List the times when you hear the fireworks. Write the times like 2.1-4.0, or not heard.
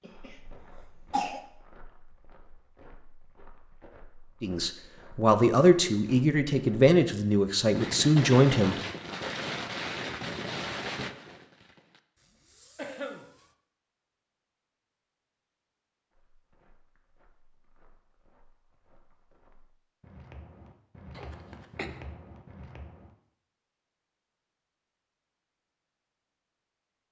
7.7-13.6.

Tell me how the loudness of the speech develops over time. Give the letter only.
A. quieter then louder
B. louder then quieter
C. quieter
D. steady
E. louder
D.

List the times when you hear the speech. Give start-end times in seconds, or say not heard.
4.4-8.8.